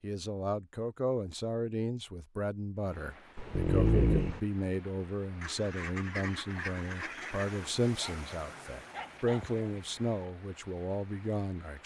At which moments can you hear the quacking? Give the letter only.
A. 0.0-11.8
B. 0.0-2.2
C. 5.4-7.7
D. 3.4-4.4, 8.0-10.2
C.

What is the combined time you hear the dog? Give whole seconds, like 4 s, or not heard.
3 s.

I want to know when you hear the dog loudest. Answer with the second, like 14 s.
4 s.